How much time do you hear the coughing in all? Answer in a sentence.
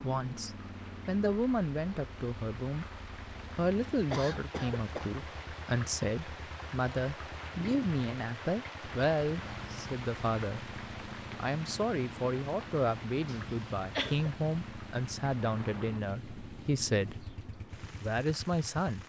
You can hear the coughing for 2 seconds altogether.